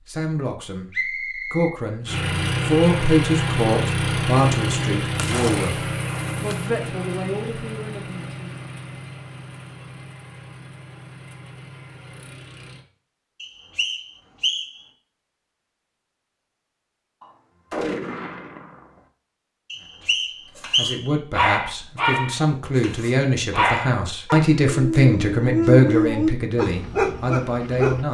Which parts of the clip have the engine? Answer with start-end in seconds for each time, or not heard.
2.0-12.8.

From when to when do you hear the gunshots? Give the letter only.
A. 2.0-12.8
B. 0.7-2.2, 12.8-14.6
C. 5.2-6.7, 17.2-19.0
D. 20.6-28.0
C.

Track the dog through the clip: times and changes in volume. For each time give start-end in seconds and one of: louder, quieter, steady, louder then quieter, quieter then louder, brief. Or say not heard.
20.6-28.0 quieter then louder.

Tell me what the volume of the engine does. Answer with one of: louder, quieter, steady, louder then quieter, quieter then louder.
quieter.